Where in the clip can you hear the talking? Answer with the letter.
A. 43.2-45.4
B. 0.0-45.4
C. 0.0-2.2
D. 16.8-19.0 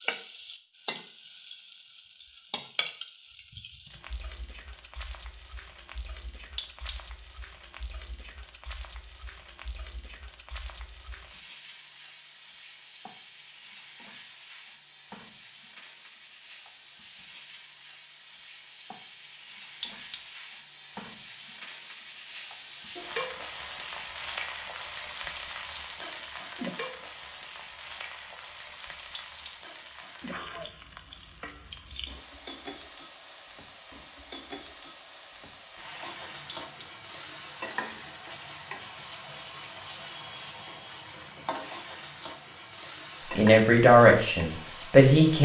A.